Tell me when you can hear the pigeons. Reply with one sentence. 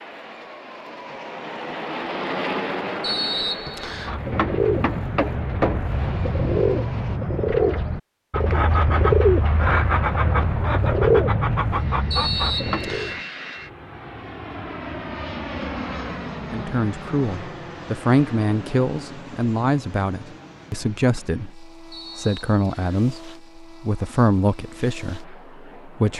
You can hear the pigeons from 3.9 to 13.2 s.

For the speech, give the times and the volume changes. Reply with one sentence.
You can hear the speech from 16.5 to 26.1 s, at a steady volume.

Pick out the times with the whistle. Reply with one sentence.
The whistle can be heard from 3.0 to 4.2 s, from 12.1 to 13.2 s and from 21.9 to 23.1 s.